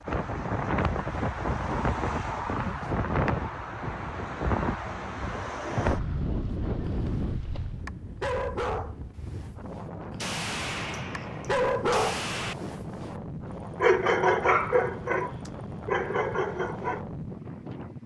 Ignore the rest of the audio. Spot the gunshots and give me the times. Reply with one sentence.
The gunshots can be heard from 10.2 to 12.6 s.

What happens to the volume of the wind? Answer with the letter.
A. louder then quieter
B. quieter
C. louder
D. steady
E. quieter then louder
B.